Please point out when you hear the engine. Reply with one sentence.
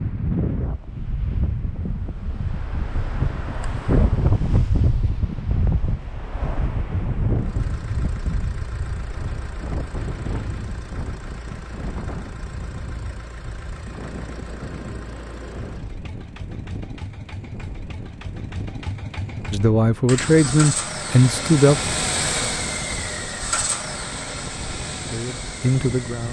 The engine can be heard from 7.3 to 26.2 s.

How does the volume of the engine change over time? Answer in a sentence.
The volume of the engine goes up.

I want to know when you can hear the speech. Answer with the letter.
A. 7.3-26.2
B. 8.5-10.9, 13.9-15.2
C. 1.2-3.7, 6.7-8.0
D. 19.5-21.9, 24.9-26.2
D.